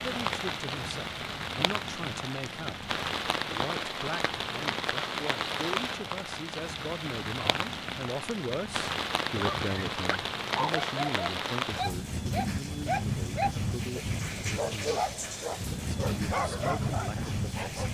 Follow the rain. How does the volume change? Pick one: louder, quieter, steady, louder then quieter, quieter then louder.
steady.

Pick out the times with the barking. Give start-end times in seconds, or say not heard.
9.3-17.9.